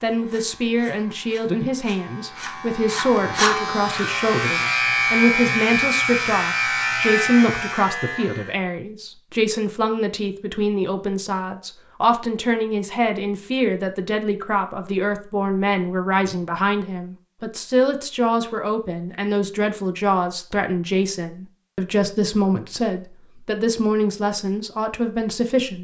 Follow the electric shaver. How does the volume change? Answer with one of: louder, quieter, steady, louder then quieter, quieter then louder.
louder.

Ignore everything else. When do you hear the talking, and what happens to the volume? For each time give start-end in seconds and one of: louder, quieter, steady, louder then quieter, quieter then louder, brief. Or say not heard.
0.0-25.7 steady.